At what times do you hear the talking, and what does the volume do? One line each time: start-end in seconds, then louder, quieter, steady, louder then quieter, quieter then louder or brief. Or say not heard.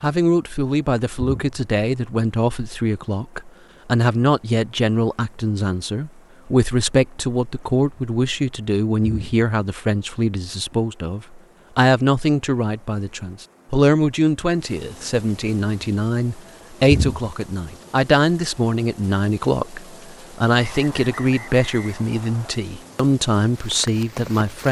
0.0-24.6 steady.